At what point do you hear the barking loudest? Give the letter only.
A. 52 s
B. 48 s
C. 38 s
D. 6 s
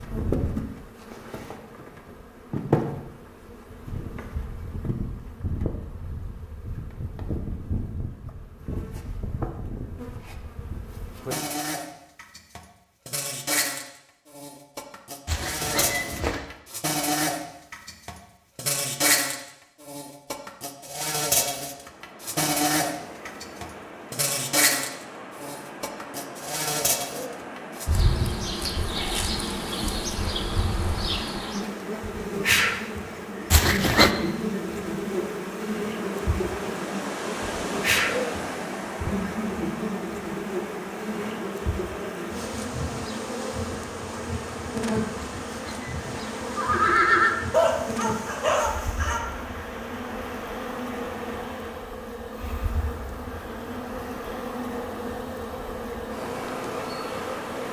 B.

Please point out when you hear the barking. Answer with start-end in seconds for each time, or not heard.
47.5-49.2.